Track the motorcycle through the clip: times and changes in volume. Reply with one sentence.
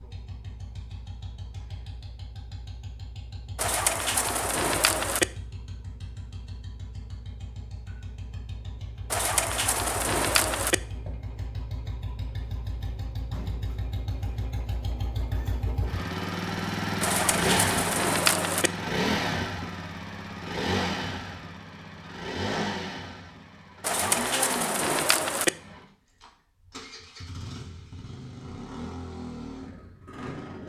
The motorcycle can be heard from 0.0 to 30.6 s, getting louder then quieter.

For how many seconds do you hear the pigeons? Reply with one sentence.
You can hear the pigeons for 7 seconds altogether.